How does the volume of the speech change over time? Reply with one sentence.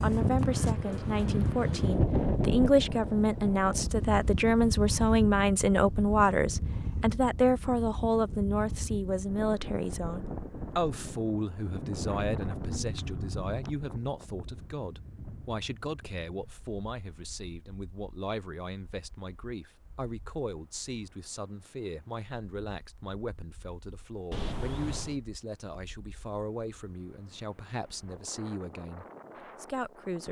The loudness of the speech goes down.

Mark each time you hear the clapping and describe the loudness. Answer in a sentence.
The clapping can't be heard in this clip.